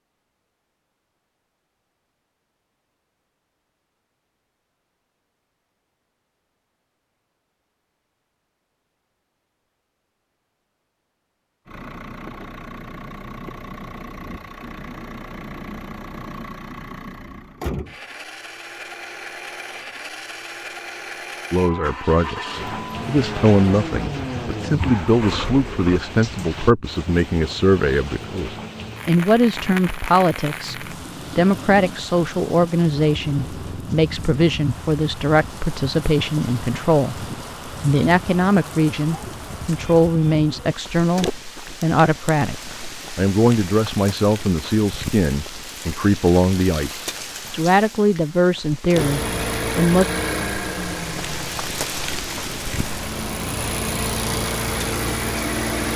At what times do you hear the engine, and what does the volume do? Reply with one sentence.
You can hear the engine from 11.7 to 26.1 s, getting louder; and from 48.9 to 55.9 s, getting quieter then louder.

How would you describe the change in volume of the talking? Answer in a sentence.
The loudness of the talking stays about the same.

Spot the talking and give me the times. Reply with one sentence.
The talking can be heard from 21.5 to 50.0 s.